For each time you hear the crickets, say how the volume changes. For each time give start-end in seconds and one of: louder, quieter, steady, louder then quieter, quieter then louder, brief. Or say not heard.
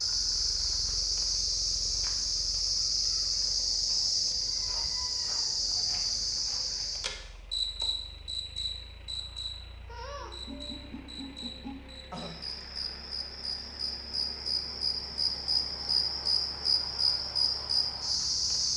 0.0-18.7 quieter then louder.